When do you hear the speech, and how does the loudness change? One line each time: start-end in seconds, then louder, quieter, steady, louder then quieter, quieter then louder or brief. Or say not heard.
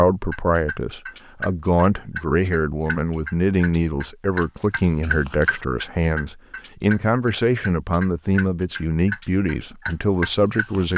0.0-10.9 steady.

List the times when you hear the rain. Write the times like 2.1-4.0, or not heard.
not heard.